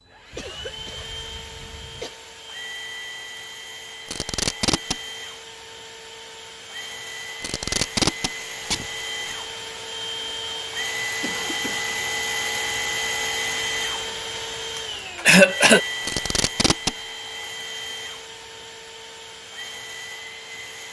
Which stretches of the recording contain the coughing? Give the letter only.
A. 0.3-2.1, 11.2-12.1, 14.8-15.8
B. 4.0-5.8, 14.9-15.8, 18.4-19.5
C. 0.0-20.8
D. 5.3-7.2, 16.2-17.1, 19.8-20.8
A.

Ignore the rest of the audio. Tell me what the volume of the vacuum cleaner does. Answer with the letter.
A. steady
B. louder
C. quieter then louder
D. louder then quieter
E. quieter
D.